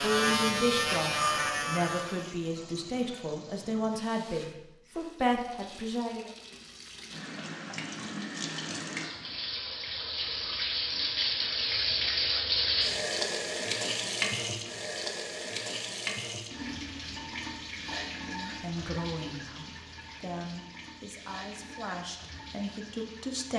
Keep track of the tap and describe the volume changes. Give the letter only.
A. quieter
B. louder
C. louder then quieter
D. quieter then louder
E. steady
C.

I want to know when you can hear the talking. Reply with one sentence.
You can hear the talking from 0.0 to 6.3 s and from 18.2 to 23.5 s.